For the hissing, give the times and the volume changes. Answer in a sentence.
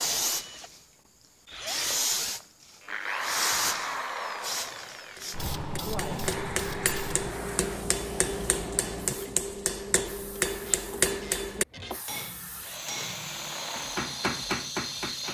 The hissing can be heard from 0.0 to 15.2 s, getting quieter then louder.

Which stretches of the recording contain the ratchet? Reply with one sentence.
You can hear the ratchet from 10.3 to 12.0 s.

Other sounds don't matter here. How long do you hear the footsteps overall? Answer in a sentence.
The footsteps can't be heard in this clip.